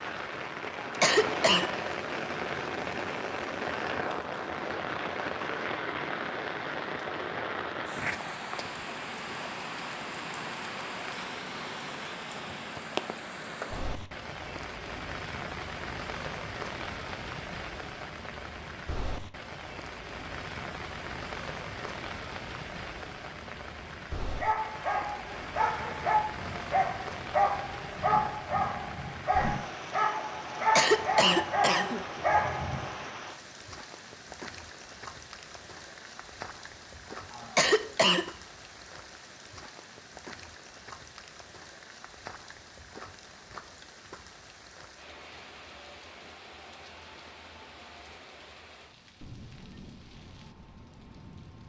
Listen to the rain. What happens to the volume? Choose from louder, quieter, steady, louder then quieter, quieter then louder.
quieter.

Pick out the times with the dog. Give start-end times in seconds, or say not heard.
24.4-33.0.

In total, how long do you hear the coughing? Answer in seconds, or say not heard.
4 s.